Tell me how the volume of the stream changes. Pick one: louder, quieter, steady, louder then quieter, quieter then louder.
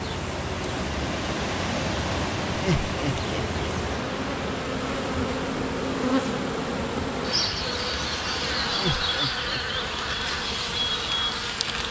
quieter.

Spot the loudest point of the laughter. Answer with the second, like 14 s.
3 s.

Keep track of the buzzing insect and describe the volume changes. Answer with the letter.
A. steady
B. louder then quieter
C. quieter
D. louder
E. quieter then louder
D.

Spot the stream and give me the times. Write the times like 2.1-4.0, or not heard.
0.0-9.2.